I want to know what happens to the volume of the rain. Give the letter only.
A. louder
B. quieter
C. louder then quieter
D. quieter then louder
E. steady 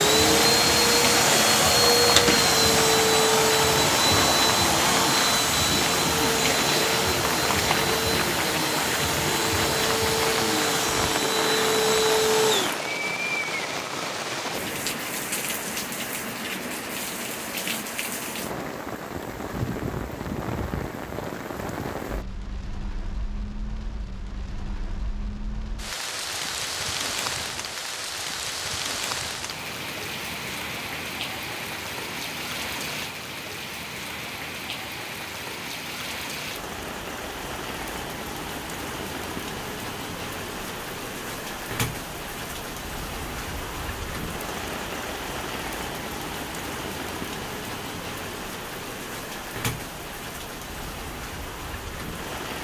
B.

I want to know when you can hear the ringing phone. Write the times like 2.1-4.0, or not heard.
not heard.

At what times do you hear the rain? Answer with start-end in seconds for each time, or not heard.
0.0-52.5.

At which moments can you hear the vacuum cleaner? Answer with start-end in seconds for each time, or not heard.
0.0-12.8.